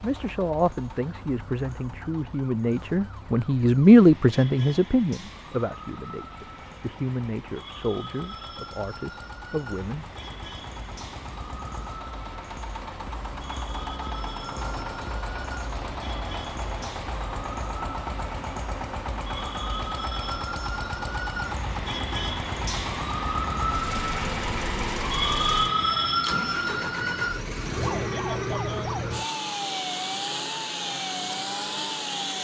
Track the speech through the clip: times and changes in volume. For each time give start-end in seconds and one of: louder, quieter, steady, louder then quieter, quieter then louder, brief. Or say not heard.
0.0-10.1 louder then quieter.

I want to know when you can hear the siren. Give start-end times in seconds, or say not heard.
0.1-32.3.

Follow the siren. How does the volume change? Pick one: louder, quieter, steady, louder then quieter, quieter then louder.
louder.